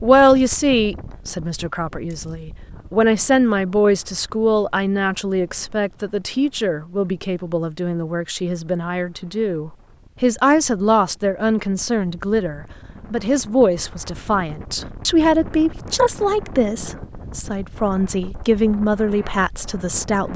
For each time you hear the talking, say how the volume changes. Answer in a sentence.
You can hear the talking from 0.0 to 20.3 s, at a steady volume.